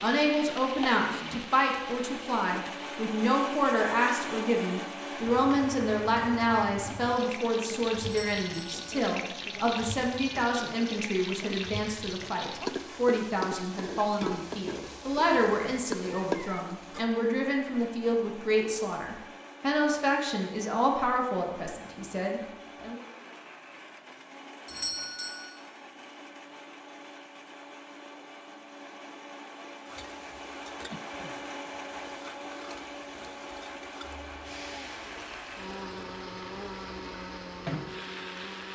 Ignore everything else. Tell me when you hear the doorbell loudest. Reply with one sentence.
The loudest moment of the doorbell is at 25 seconds.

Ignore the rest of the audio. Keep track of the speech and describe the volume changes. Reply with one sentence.
The volume of the speech stays about the same.